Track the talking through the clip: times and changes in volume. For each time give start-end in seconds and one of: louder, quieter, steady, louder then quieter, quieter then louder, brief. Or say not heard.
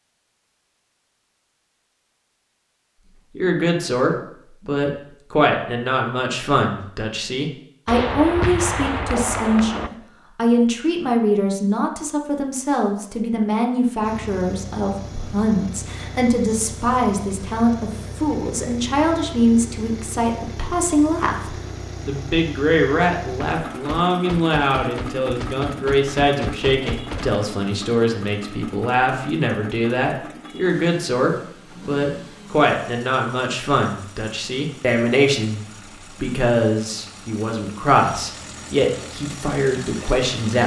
3.4-40.6 steady.